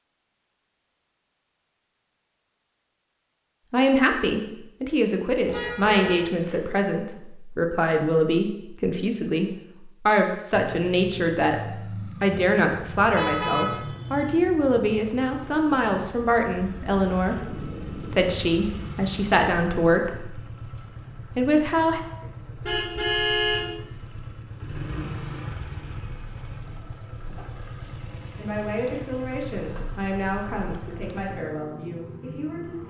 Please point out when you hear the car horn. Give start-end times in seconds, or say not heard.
5.5-6.7, 13.2-14.3, 22.2-23.8.